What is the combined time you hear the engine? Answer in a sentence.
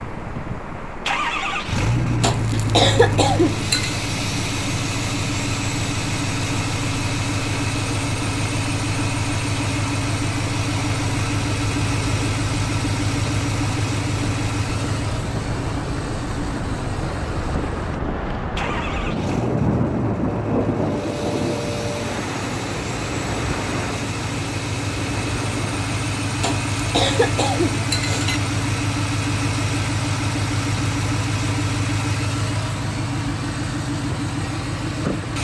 The engine can be heard for 35 seconds in total.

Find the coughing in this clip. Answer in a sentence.
The coughing can be heard from 2.2 to 4.0 s and from 26.4 to 28.4 s.